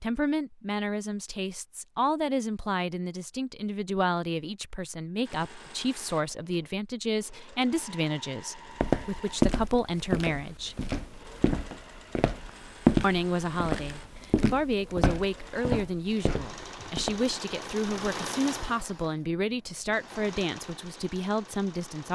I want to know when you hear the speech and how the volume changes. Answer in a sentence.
You can hear the speech from 0.0 to 10.8 s, at a steady volume; and from 13.0 to 22.0 s, at a steady volume.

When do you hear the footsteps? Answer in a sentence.
The footsteps can be heard from 8.8 to 17.2 s.